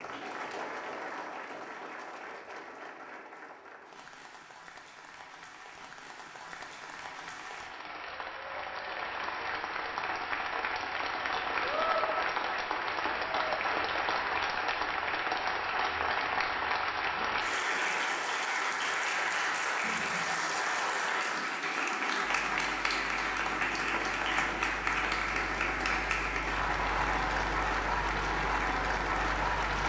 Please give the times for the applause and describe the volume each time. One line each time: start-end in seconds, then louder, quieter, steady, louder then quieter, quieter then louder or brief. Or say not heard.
0.0-29.8 louder.